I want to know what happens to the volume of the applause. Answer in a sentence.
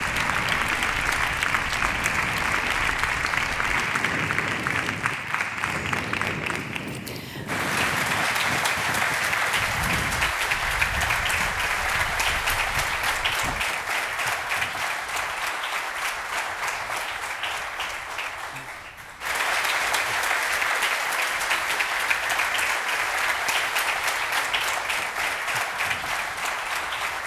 The volume of the applause stays about the same.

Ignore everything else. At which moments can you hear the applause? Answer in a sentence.
You can hear the applause from 0.0 to 27.2 s.